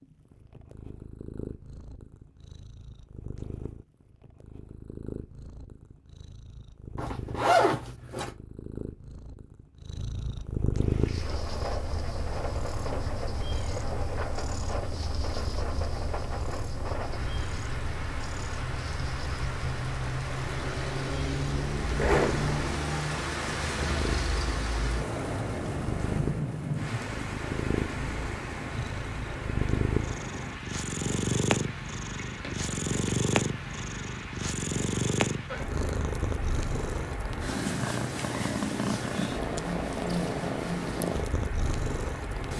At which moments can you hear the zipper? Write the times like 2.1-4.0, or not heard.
7.0-8.3, 21.4-22.5.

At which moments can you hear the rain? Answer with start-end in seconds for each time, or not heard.
10.8-42.5.